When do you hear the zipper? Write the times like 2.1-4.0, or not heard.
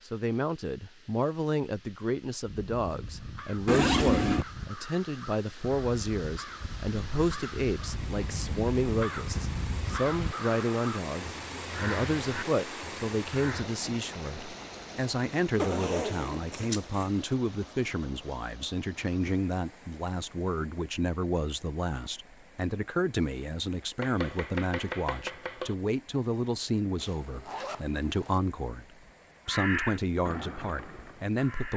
3.6-4.5, 15.6-17.1, 26.9-28.4.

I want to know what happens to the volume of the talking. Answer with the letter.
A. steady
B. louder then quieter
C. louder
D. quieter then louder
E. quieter
A.